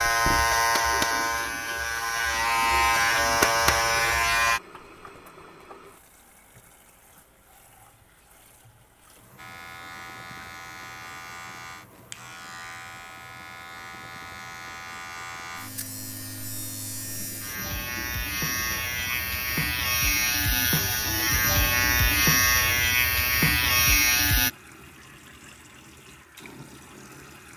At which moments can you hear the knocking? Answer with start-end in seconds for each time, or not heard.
not heard.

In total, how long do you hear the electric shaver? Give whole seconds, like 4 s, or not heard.
20 s.